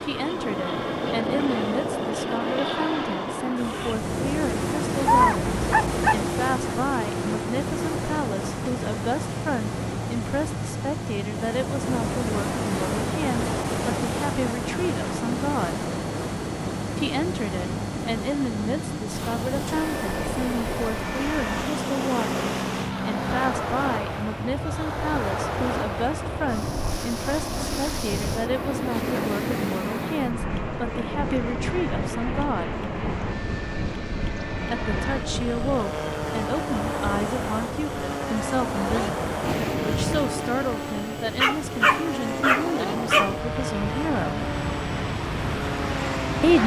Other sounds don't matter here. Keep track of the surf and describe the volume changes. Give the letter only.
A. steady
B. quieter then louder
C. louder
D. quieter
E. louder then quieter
A.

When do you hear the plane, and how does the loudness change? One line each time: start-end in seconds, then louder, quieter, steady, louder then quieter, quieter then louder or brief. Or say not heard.
0.0-46.6 steady.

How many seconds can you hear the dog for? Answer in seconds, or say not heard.
3 s.